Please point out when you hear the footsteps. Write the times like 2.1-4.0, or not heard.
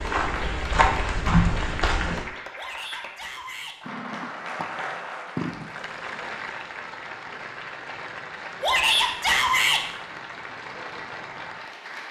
0.0-2.2.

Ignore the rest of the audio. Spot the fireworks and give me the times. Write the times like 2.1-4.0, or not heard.
not heard.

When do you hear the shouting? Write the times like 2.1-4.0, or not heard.
2.5-3.8, 8.6-9.8.